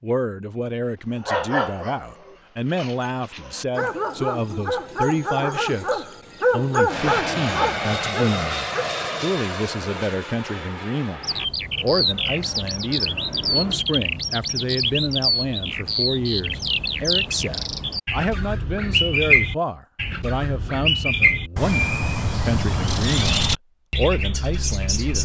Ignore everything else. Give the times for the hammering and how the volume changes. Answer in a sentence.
The hammering can't be heard in this clip.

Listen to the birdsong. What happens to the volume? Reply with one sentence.
The volume of the birdsong stays about the same.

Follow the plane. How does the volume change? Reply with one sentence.
The volume of the plane goes down.